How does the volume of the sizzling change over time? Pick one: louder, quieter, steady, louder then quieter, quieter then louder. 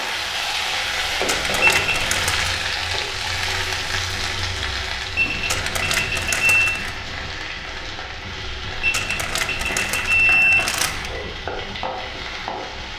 quieter.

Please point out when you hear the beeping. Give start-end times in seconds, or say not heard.
1.6-2.2, 5.2-6.8, 8.8-10.8.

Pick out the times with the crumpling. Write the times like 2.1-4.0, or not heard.
1.2-2.6, 5.5-7.0, 8.9-11.2.